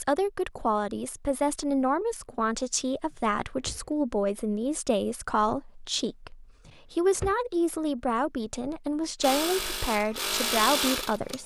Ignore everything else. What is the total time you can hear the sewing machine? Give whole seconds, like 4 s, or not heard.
2 s.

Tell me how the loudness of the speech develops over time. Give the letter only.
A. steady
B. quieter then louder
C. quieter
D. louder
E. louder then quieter
A.